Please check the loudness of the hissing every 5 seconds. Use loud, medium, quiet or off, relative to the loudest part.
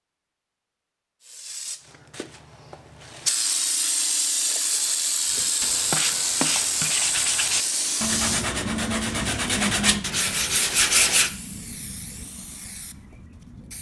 loud, loud, quiet.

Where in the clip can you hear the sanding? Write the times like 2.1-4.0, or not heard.
5.3-11.3.